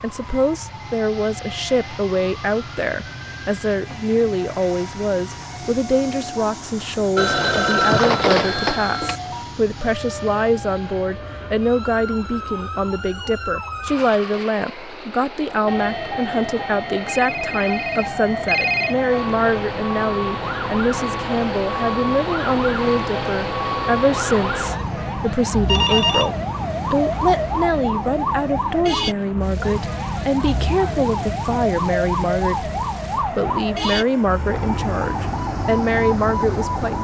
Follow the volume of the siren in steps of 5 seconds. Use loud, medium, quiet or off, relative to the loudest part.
quiet, medium, medium, loud, loud, loud, loud, loud.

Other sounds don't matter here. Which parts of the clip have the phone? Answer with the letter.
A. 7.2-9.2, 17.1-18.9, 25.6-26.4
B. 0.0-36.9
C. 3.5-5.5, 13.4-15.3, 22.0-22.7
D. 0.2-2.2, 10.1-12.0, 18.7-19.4
A.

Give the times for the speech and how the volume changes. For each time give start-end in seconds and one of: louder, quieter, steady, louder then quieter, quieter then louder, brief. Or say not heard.
0.0-36.9 steady.